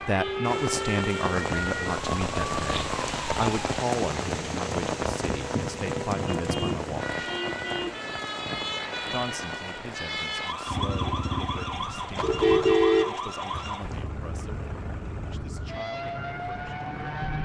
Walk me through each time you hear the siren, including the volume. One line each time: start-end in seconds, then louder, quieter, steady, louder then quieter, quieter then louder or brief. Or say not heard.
0.0-17.4 steady.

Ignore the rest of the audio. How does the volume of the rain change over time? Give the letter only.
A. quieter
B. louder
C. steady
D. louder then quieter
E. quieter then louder
A.